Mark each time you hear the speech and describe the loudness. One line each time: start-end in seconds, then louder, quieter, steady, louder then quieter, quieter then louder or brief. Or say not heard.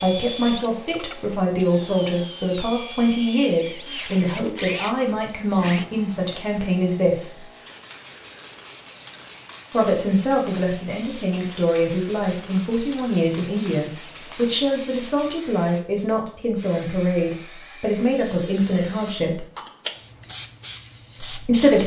0.0-7.4 steady
9.7-19.4 steady
21.2-21.8 brief.